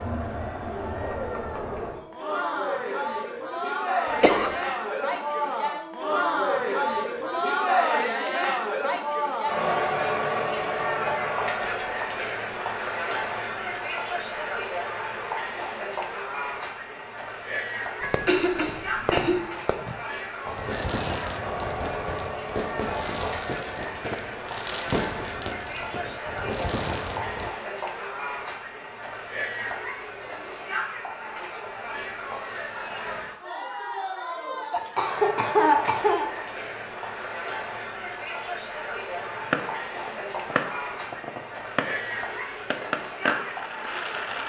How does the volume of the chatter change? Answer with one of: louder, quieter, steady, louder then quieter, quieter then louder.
quieter.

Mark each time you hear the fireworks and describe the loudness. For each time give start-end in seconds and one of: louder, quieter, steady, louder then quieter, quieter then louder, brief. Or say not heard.
18.0-27.5 steady
39.1-44.4 louder.